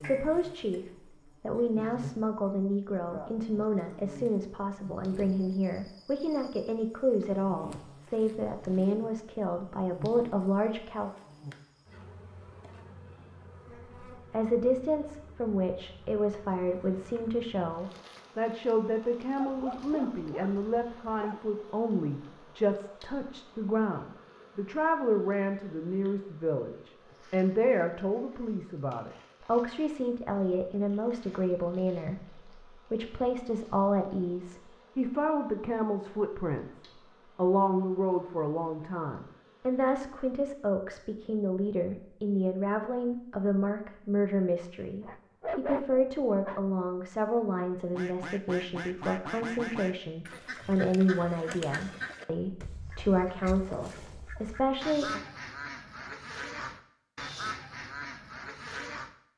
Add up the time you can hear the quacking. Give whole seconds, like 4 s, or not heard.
11 s.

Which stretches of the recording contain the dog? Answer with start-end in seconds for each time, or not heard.
19.4-21.4, 45.0-46.6.